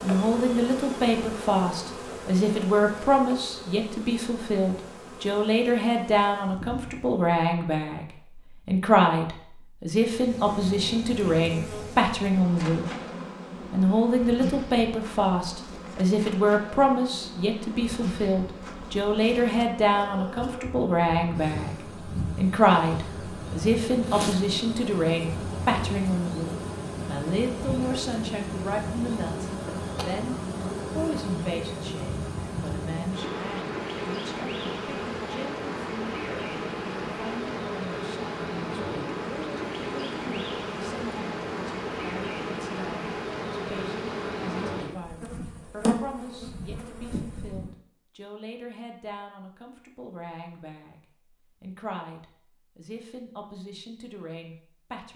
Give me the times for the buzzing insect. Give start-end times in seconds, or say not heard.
0.0-7.2, 10.0-47.7.